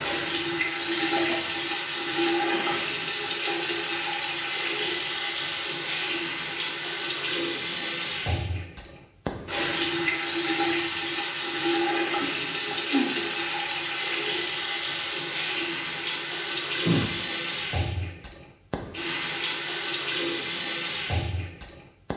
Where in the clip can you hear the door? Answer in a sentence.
You can't hear the door here.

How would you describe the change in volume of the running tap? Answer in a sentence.
The loudness of the running tap stays about the same.